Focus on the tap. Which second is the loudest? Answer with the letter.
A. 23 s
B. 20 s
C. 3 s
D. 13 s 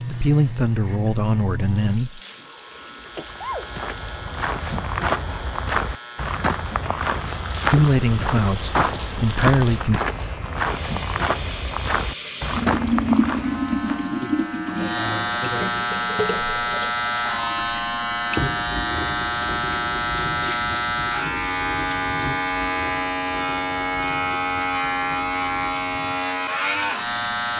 D.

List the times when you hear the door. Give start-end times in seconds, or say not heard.
not heard.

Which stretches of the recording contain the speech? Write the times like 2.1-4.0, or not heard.
0.1-2.2, 7.7-10.1.